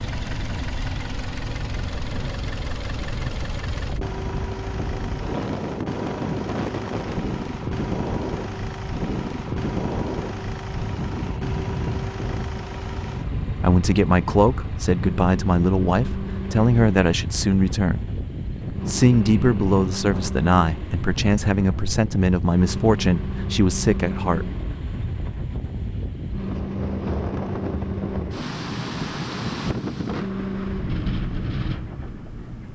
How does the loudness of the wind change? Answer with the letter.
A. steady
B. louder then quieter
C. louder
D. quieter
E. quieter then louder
A.